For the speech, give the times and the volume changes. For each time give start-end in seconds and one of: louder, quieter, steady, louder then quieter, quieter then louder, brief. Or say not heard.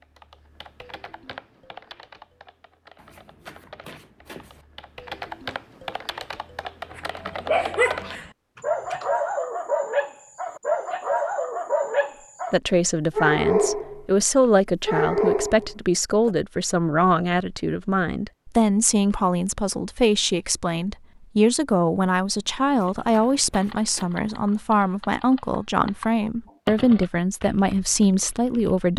12.5-28.9 steady.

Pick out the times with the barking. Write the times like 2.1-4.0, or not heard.
7.0-14.1, 14.8-16.3.